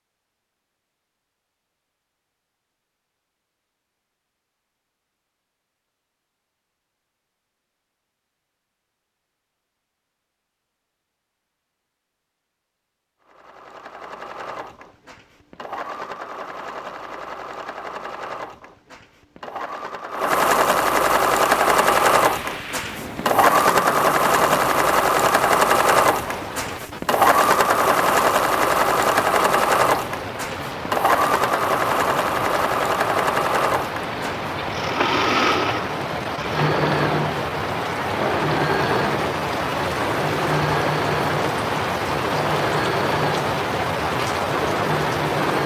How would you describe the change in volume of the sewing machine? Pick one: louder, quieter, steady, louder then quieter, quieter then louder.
louder then quieter.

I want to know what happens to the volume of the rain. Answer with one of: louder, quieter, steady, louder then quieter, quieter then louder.
louder.